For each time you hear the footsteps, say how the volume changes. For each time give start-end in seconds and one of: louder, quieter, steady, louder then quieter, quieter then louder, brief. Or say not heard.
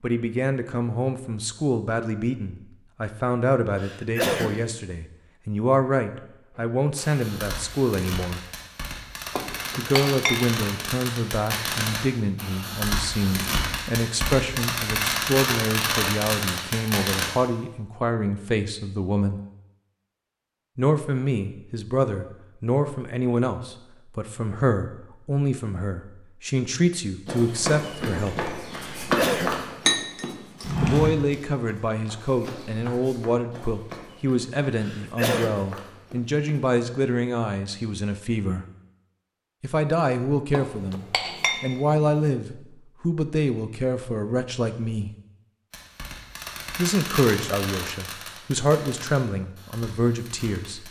27.2-36.6 quieter.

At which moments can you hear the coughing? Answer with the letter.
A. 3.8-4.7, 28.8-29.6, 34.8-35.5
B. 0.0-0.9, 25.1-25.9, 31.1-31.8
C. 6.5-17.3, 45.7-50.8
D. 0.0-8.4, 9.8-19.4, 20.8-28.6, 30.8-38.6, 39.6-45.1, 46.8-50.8
A.